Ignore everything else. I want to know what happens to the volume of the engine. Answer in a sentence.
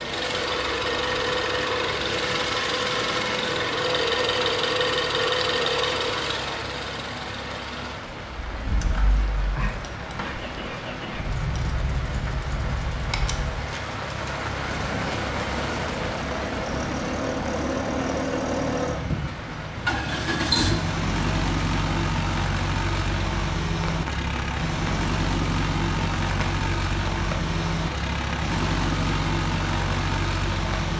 The volume of the engine goes down, then up.